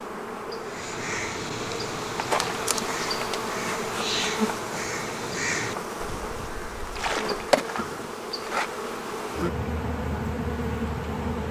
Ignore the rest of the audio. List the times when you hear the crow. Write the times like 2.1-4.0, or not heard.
0.6-8.2.